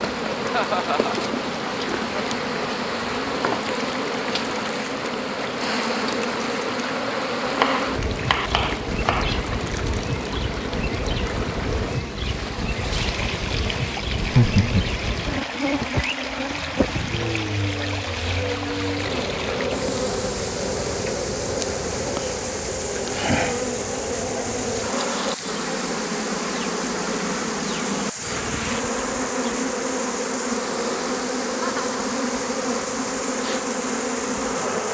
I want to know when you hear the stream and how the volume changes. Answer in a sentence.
You can hear the stream from 0.0 to 34.8 s, at a steady volume.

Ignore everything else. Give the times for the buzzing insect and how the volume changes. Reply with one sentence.
The buzzing insect can be heard from 0.0 to 34.8 s, at a steady volume.